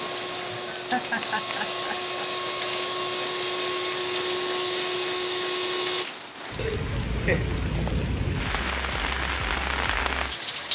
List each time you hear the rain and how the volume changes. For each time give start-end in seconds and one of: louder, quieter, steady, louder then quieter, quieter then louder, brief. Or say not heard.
0.0-10.6 louder.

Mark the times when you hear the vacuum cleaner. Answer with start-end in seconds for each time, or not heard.
0.0-6.0.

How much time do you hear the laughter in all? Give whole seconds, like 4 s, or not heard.
3 s.